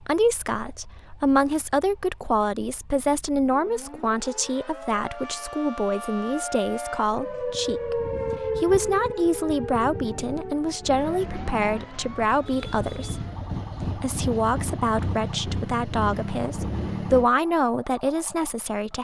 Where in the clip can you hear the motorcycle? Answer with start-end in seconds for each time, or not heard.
10.8-17.3.